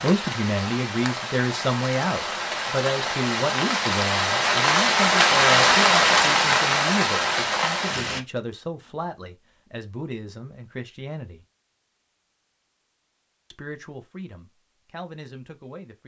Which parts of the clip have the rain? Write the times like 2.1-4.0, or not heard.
0.0-8.2.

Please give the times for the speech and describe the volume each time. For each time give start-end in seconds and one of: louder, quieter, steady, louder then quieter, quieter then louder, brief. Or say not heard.
0.0-11.4 quieter
13.5-16.0 brief.